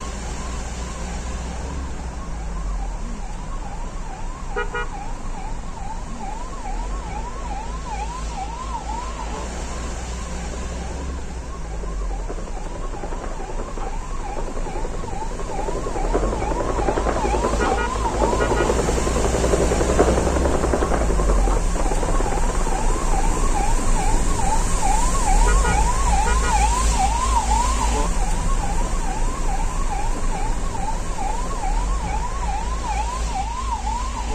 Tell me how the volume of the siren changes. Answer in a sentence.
The loudness of the siren goes up.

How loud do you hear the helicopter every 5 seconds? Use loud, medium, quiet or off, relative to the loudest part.
quiet, quiet, quiet, loud, loud, quiet, quiet.